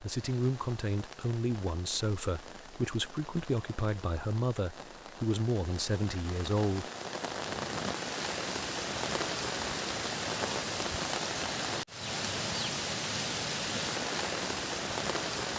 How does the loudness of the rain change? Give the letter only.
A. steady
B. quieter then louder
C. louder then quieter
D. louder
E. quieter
D.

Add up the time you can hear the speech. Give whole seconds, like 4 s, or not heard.
7 s.